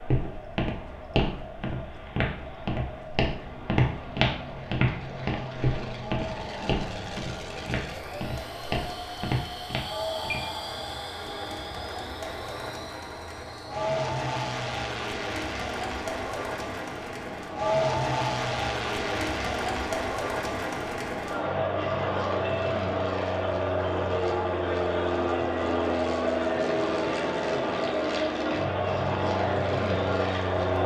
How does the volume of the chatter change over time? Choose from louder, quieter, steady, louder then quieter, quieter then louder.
louder.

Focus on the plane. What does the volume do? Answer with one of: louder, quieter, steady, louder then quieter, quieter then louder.
louder.